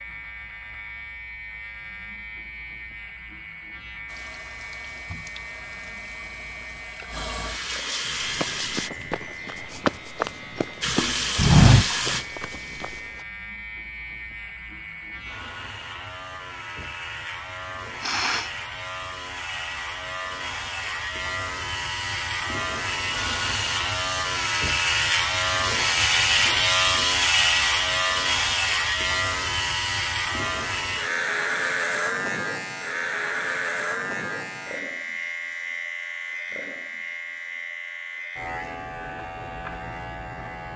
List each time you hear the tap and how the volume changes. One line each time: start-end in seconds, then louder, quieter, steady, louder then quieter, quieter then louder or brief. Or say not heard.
4.0-8.9 louder
10.8-13.1 brief.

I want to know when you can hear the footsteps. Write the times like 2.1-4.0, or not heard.
8.3-12.8.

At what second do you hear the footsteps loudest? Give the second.
12 s.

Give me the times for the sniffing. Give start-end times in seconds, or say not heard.
18.0-18.5, 26.4-27.1.